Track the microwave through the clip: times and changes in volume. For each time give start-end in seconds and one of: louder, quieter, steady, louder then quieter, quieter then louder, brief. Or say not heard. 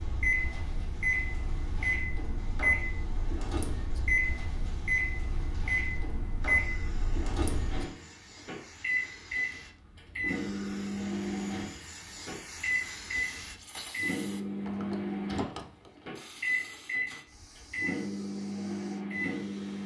0.0-19.8 steady.